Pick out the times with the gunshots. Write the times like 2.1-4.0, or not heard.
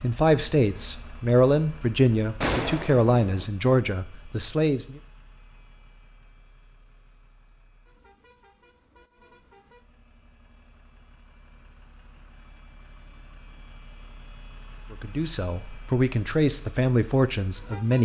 2.4-3.5.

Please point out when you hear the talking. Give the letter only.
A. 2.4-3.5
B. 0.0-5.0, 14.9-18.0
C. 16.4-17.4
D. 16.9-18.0
B.